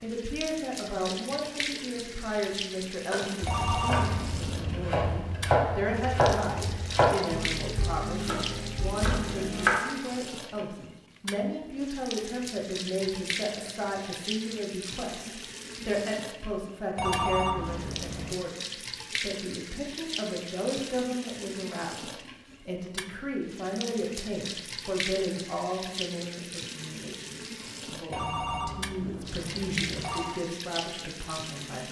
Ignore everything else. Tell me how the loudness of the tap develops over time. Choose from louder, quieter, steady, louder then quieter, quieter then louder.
steady.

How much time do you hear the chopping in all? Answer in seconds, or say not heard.
7 s.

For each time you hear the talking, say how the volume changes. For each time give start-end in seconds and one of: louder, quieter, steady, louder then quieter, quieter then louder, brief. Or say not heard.
0.0-31.8 steady.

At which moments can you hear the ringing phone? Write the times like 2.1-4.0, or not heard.
3.5-5.1, 16.9-18.4, 28.1-30.4.